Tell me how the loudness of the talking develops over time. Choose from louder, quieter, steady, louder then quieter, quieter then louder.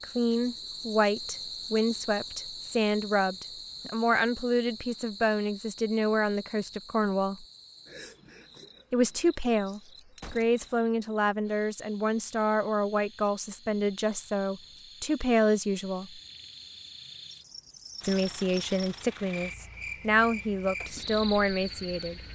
steady.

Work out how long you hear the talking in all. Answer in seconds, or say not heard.
19 s.